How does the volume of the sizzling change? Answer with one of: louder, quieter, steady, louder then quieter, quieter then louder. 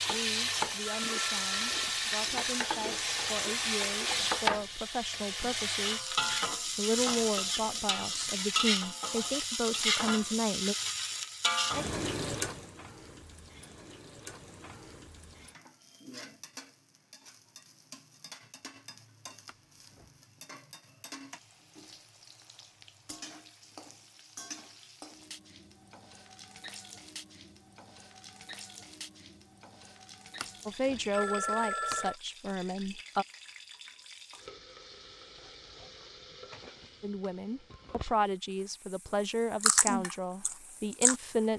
quieter.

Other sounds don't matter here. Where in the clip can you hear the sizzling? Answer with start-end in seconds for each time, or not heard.
0.0-41.5.